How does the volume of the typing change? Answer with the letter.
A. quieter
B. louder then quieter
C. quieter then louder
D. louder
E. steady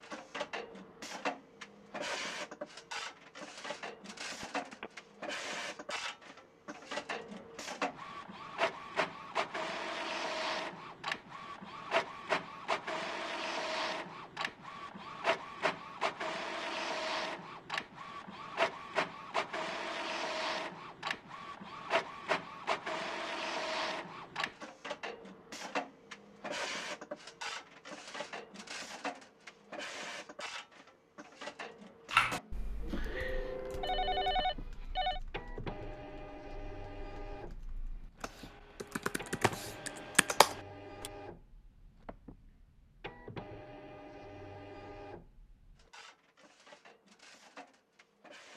C.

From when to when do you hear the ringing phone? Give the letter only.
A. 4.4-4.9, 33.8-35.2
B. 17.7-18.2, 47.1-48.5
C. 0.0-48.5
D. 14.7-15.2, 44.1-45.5
A.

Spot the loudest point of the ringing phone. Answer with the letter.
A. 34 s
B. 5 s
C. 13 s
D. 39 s
A.